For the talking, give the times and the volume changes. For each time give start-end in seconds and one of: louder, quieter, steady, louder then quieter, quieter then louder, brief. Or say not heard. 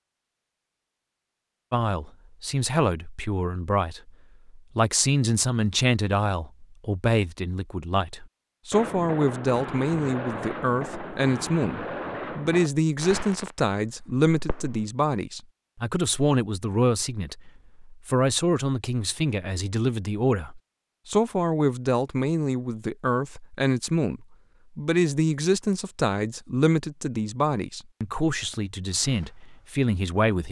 1.7-30.4 steady.